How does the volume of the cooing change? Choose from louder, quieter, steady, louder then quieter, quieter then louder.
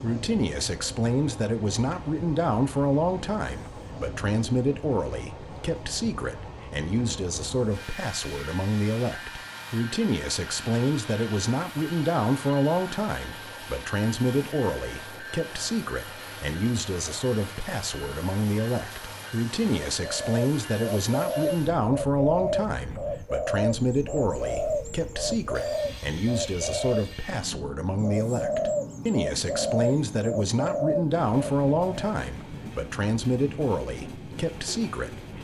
steady.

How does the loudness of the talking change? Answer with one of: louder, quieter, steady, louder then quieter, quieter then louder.
steady.